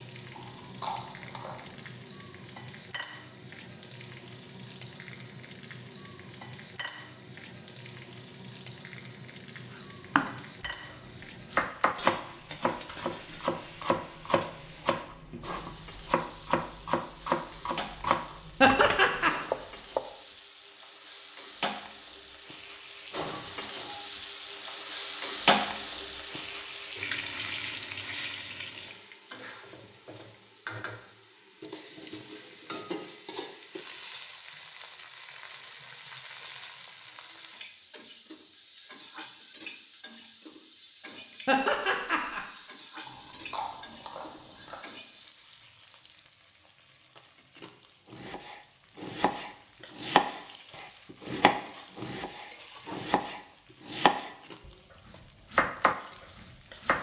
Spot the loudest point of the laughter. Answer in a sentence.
The volume of the laughter peaks at 19 seconds.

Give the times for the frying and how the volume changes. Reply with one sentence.
The frying can be heard from 0.0 to 56.9 s, getting louder then quieter.